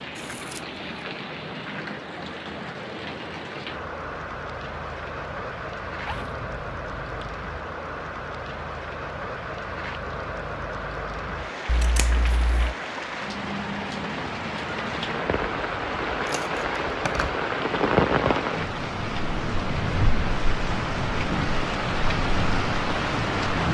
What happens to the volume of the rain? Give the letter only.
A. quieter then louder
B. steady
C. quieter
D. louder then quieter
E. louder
E.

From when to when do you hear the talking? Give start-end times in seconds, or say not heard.
not heard.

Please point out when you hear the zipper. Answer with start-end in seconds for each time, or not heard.
6.0-7.3.